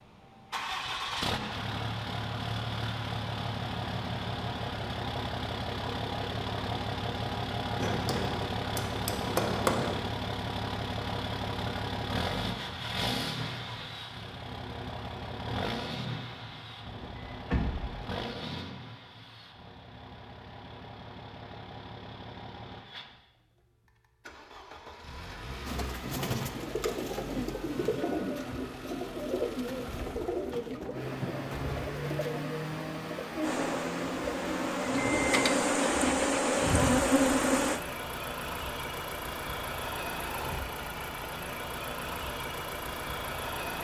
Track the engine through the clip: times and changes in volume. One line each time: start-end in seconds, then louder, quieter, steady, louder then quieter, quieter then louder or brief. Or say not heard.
0.0-43.7 quieter then louder.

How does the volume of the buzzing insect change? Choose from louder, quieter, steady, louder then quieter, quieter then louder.
louder.